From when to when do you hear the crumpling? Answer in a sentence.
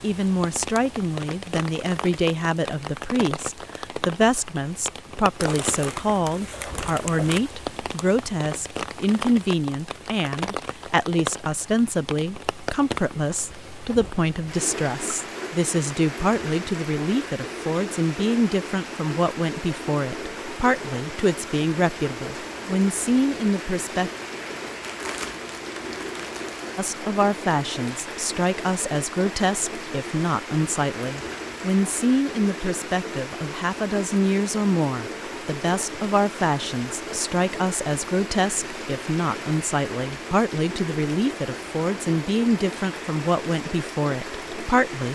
The crumpling can be heard from 5.3 to 7.4 s and from 24.8 to 26.6 s.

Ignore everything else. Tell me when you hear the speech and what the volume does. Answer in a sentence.
The speech can be heard from 0.0 to 24.1 s, at a steady volume; and from 26.8 to 45.0 s, at a steady volume.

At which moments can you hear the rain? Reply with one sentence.
The rain can be heard from 0.0 to 45.0 s.